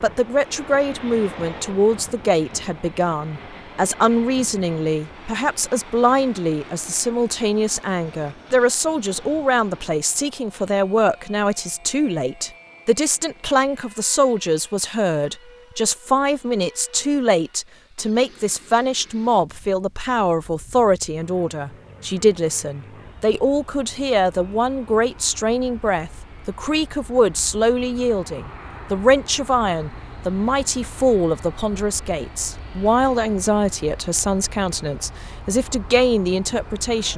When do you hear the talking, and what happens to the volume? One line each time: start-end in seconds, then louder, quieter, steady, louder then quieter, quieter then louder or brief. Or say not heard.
0.0-37.1 steady.